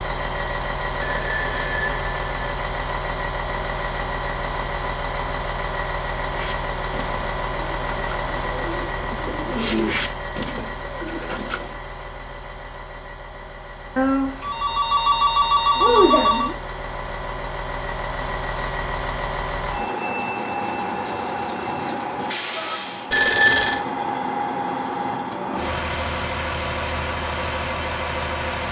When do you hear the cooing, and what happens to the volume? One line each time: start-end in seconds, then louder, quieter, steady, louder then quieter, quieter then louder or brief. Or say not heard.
6.3-11.7 louder then quieter.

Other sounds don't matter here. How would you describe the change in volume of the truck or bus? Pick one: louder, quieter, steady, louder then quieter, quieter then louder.
quieter then louder.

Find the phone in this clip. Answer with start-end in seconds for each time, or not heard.
1.0-2.3, 13.9-16.6, 23.1-23.9.